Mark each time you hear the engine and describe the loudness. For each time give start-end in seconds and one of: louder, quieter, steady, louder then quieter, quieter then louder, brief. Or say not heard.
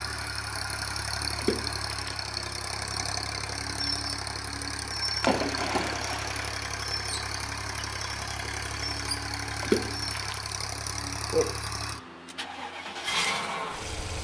0.0-14.1 steady.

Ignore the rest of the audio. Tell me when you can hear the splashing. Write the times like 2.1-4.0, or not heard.
1.4-2.3, 5.2-6.6, 9.6-10.6.